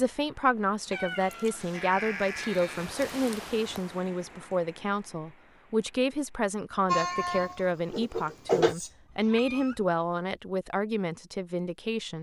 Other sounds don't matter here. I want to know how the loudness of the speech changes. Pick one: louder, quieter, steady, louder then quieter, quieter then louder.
steady.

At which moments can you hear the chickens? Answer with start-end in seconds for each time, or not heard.
not heard.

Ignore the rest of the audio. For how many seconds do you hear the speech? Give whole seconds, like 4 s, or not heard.
12 s.